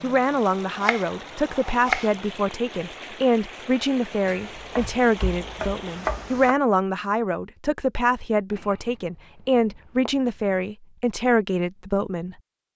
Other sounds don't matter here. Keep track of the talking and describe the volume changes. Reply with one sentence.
The volume of the talking stays about the same.